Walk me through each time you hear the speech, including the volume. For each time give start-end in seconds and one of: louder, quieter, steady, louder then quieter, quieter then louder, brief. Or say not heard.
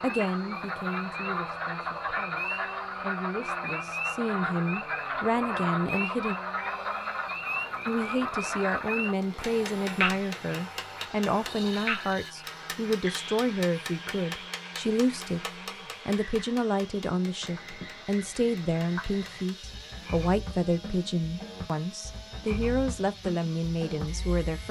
0.0-6.3 quieter then louder
7.8-24.6 steady.